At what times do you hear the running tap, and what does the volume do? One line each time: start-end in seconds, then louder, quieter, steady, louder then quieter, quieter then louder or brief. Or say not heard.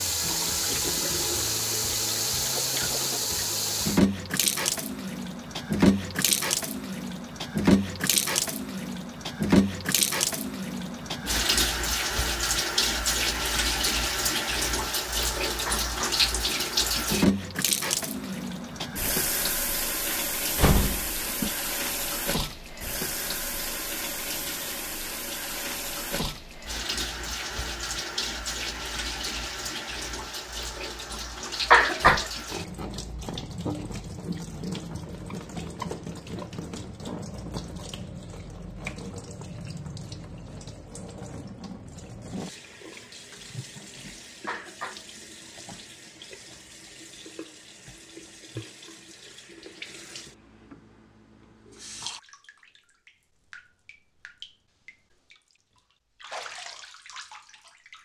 0.0-58.0 quieter.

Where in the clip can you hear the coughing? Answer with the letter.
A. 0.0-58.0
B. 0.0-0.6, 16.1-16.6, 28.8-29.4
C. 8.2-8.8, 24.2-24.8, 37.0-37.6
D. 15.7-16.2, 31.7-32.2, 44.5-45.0
D.